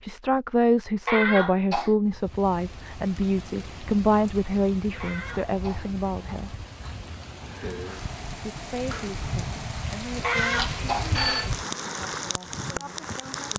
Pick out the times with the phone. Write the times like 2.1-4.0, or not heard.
10.3-11.5.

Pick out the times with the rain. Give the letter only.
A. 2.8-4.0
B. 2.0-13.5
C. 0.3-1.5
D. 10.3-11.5
B.